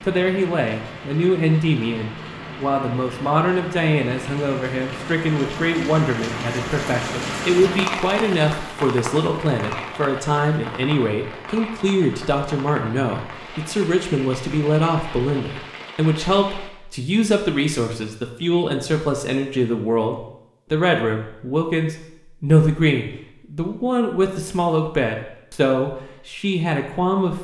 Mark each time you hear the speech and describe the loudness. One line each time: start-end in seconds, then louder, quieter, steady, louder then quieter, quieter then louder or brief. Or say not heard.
0.0-27.3 steady.